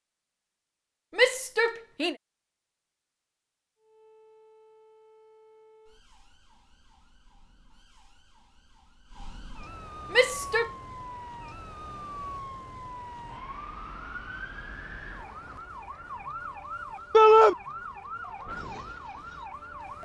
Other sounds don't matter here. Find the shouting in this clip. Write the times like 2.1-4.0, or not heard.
1.1-2.1, 10.1-10.7, 17.1-17.6.